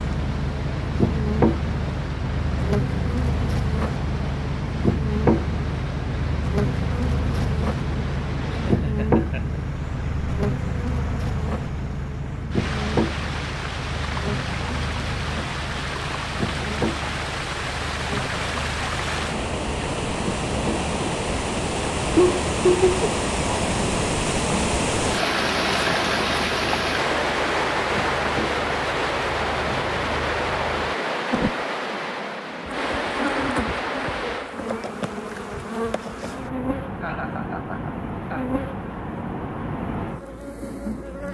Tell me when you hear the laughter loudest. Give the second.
23 s.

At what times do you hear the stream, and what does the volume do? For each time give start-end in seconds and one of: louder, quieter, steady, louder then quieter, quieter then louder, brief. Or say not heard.
0.0-34.6 louder.